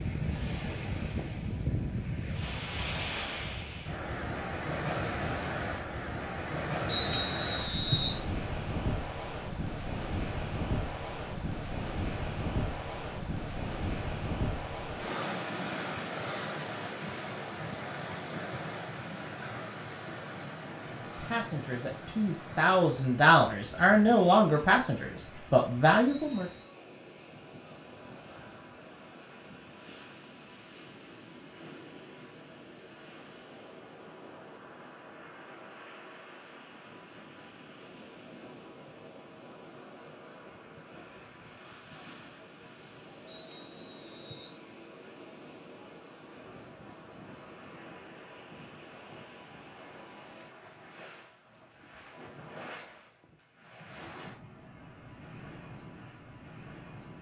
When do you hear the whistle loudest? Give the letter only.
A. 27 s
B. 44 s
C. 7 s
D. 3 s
C.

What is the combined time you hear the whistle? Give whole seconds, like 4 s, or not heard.
3 s.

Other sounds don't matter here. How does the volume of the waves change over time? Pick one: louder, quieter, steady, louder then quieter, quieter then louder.
quieter.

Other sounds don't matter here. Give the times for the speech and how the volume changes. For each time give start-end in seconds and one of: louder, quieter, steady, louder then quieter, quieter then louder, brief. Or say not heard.
21.1-26.4 louder.